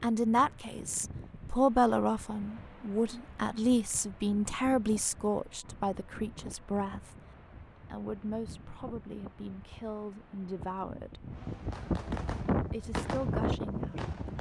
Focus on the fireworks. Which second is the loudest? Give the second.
13 s.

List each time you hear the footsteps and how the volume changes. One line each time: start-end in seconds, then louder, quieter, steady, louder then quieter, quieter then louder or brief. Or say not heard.
not heard.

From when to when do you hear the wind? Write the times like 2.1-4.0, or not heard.
0.0-14.3.